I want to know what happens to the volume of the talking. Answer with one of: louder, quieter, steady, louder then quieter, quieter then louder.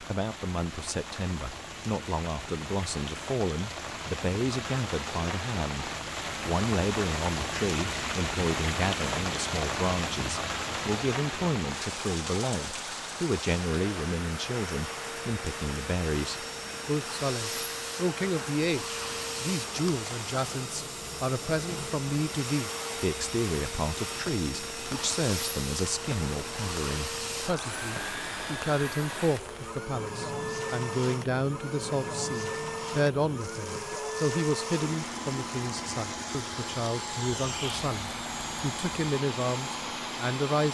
steady.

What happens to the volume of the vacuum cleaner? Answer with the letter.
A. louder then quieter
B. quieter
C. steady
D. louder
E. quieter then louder
C.